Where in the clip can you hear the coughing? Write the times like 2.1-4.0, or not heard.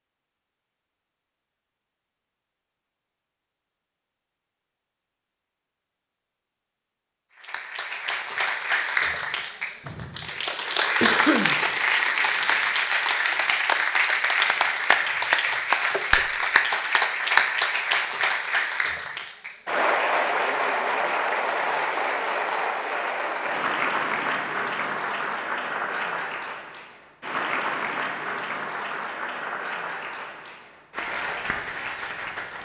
11.0-11.6.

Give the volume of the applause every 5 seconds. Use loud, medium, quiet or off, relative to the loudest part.
off, medium, loud, loud, loud, medium, medium.